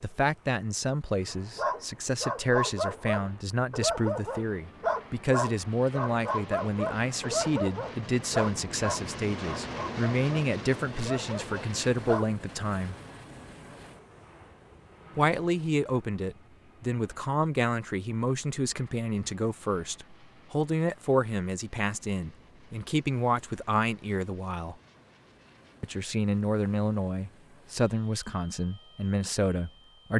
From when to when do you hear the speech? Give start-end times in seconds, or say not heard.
0.0-12.9, 15.2-24.8, 25.8-30.1.